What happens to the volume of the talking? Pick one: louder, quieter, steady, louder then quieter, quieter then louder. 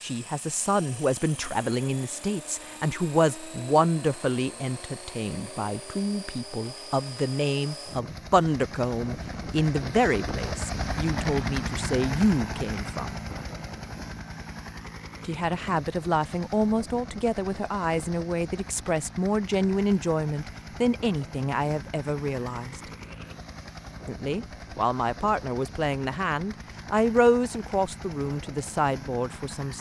steady.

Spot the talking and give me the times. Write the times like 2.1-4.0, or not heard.
0.0-13.2, 15.2-22.8, 24.1-29.7.